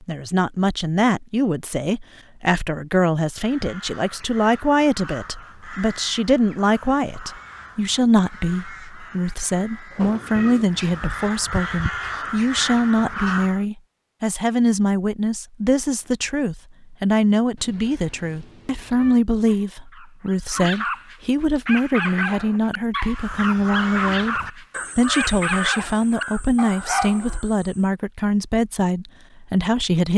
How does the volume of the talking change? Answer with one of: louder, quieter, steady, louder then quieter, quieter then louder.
steady.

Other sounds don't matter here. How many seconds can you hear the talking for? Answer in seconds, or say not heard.
30 s.